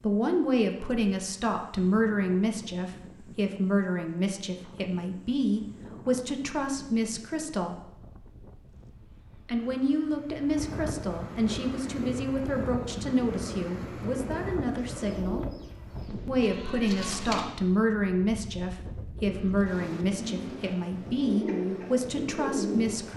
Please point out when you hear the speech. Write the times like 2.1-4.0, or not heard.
0.0-7.8, 9.4-15.4, 16.2-23.1.